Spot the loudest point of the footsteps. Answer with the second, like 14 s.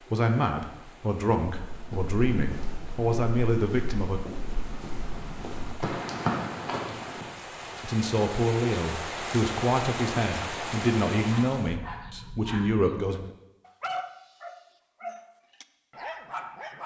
6 s.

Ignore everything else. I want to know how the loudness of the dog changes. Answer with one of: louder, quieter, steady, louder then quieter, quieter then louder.
quieter then louder.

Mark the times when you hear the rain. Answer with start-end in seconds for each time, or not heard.
0.0-11.8.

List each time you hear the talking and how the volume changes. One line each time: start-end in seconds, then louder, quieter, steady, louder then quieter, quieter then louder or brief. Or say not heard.
0.1-4.2 louder
7.8-13.2 steady.